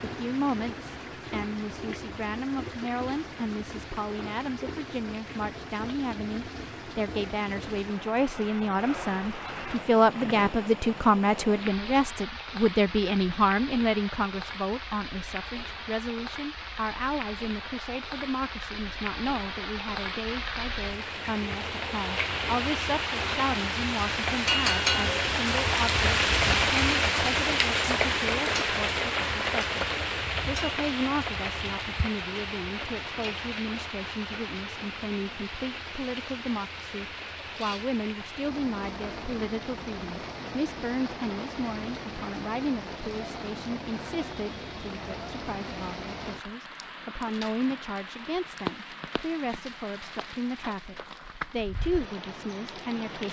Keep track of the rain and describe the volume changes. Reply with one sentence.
The volume of the rain goes up, then down.